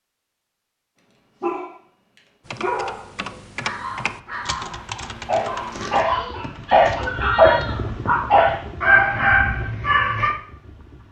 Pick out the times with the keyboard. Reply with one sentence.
The keyboard can be heard from 2.5 to 7.7 s.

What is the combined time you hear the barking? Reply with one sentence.
The barking can be heard for 9 seconds in total.